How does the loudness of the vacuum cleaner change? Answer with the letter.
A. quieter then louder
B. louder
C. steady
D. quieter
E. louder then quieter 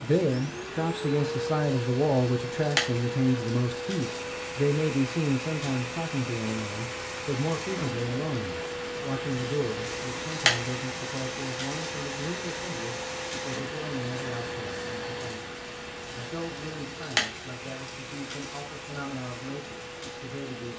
D.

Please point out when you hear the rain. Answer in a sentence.
The rain can be heard from 0.0 to 20.7 s.